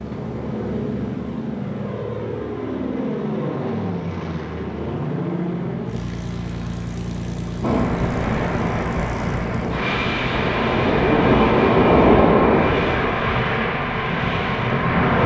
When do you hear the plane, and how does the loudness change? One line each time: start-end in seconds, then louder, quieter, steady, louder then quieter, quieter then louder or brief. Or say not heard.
0.0-15.2 steady.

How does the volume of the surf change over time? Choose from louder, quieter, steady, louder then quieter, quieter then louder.
louder then quieter.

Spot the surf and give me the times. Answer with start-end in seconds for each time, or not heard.
7.6-15.2.